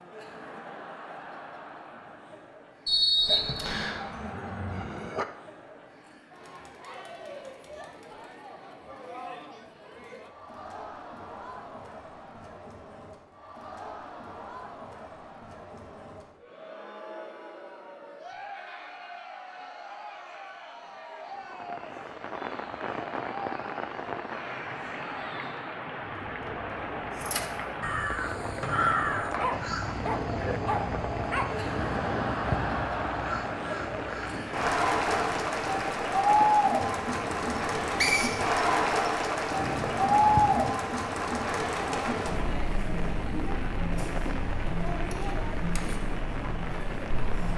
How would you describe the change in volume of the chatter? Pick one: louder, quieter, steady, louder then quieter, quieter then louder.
louder.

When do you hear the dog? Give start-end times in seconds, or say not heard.
3.2-5.2, 29.2-31.5.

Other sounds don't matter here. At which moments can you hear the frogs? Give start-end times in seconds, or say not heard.
not heard.